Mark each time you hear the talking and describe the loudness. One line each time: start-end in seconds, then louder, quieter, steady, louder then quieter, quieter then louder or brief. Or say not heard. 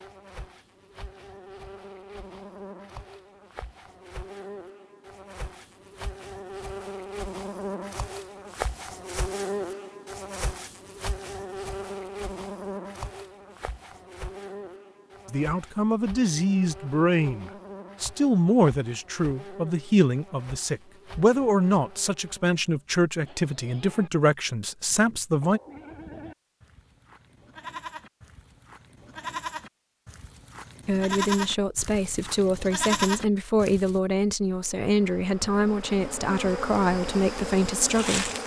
15.2-25.6 steady
30.9-38.3 steady.